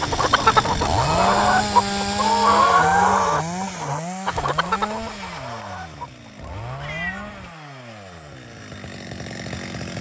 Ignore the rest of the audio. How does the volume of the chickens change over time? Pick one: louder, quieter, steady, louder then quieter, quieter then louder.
quieter.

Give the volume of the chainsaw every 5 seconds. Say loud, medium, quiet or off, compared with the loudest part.
loud, medium.